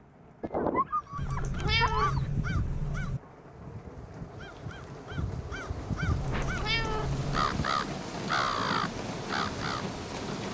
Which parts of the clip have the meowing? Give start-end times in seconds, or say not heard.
1.1-3.2, 6.2-7.6.